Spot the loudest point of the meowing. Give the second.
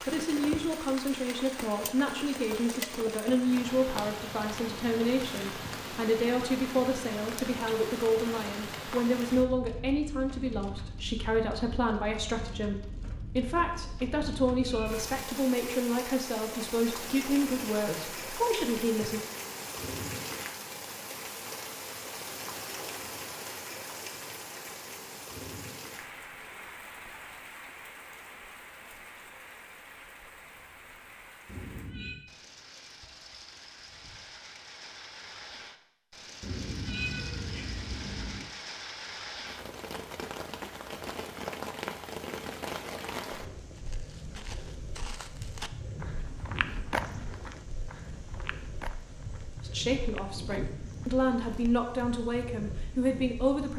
37 s.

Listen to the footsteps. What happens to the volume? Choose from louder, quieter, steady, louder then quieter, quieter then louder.
louder then quieter.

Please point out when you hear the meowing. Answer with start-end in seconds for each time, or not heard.
14.4-15.2, 31.4-32.2, 36.4-38.5.